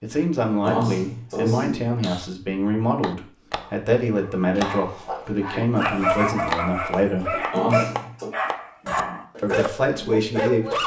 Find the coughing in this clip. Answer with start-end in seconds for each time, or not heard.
0.6-2.2, 7.5-8.3.